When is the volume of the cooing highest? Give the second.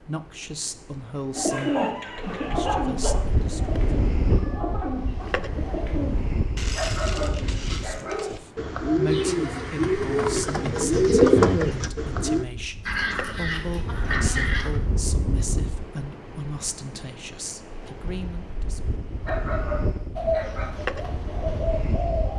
11 s.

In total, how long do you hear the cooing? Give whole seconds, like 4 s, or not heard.
13 s.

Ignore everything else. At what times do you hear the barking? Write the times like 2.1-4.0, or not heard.
1.5-3.1, 6.8-8.2, 12.8-14.8, 19.2-20.8.